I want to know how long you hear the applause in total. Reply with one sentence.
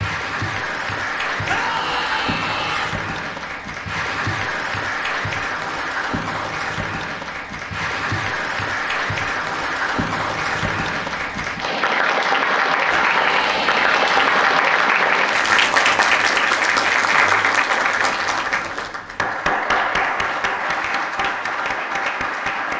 The applause can be heard for 23 seconds in total.